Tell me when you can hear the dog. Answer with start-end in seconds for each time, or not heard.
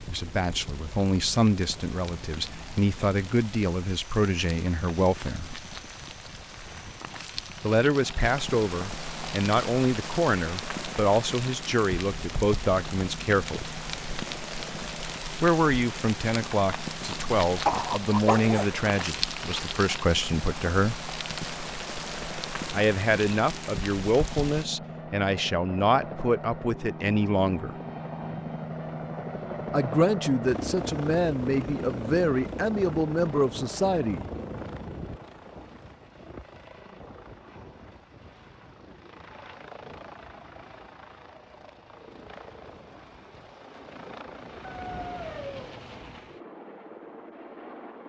17.6-18.6, 44.6-45.8.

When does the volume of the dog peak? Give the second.
18 s.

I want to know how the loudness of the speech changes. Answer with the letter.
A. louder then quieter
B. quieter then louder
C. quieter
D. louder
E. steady
E.